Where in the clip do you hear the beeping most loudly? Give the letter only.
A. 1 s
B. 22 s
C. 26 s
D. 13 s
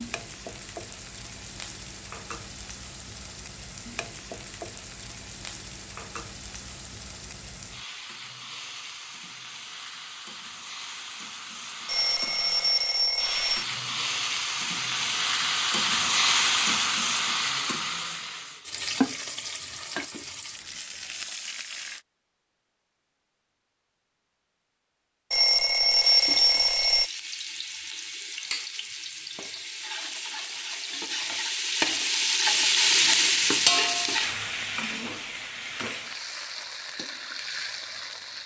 C.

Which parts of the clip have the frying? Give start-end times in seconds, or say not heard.
0.0-22.1, 25.9-38.4.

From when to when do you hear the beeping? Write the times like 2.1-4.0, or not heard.
11.8-13.7, 25.3-27.1.